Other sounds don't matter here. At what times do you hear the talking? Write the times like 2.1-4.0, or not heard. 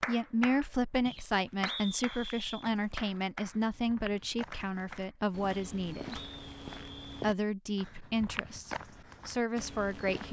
0.1-6.2, 7.2-10.2.